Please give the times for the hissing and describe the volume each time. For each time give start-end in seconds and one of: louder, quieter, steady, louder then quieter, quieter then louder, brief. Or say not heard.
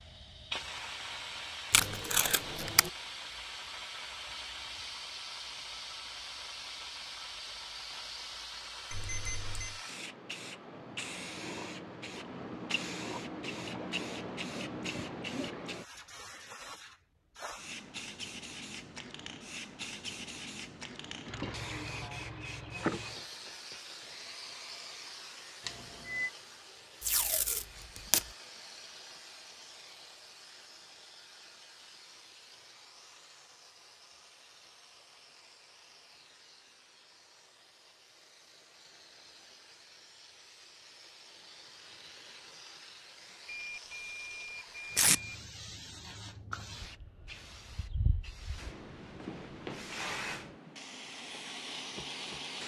0.0-52.6 quieter then louder.